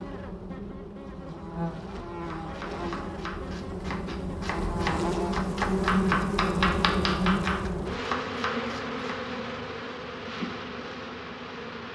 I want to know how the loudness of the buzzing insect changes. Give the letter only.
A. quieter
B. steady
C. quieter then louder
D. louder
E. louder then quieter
E.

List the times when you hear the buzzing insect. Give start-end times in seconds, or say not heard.
0.0-11.9.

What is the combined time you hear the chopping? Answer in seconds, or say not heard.
7 s.